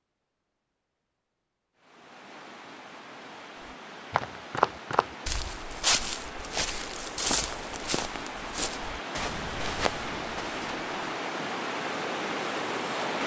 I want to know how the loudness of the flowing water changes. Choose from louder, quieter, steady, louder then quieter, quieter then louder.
louder.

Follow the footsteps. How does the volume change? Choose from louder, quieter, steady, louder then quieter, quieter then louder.
quieter.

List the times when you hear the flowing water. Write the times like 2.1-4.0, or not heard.
1.8-13.2.